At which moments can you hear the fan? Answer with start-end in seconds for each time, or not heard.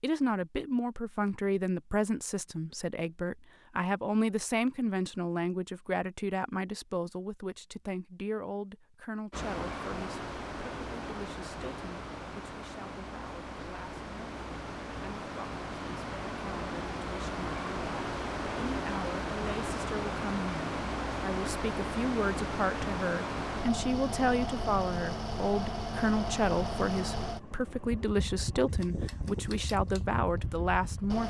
9.3-31.2.